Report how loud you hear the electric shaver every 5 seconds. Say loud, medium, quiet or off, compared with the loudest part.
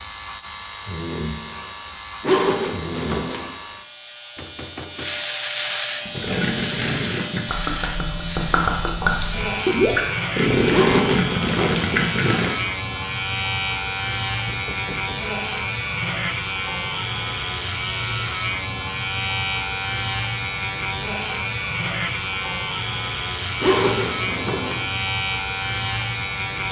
medium, loud, loud, loud, loud, loud.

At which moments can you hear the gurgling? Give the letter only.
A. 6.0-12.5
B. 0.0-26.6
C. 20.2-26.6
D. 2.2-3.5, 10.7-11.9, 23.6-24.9
A.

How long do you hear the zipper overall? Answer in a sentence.
The zipper can be heard for 4 seconds in total.